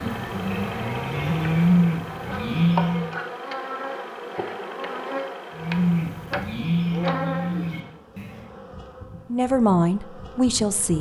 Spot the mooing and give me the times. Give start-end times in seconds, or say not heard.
0.0-3.1, 5.5-8.4.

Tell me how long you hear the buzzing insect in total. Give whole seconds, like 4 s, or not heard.
11 s.